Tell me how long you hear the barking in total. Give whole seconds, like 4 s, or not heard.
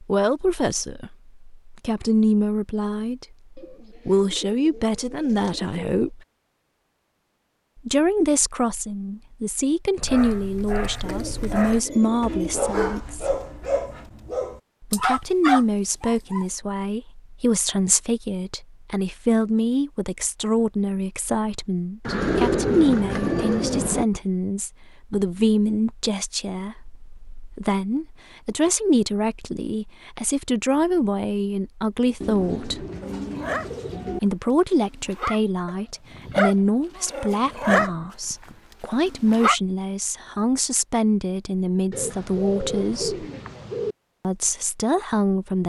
13 s.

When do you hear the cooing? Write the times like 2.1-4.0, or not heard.
3.5-6.0, 11.0-13.0, 22.1-24.1, 32.2-34.2, 41.9-44.0.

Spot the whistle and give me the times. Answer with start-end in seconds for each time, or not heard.
not heard.